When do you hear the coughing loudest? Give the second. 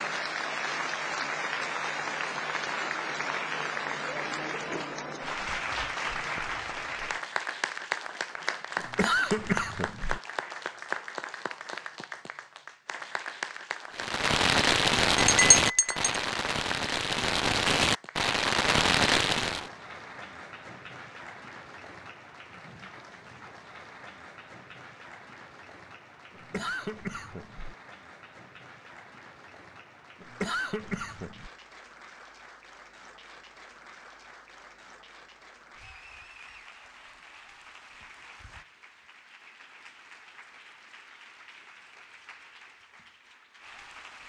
9 s.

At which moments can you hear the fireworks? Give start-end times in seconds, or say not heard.
13.9-19.7.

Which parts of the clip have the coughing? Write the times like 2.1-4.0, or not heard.
8.8-10.2, 26.3-27.8, 30.2-31.5.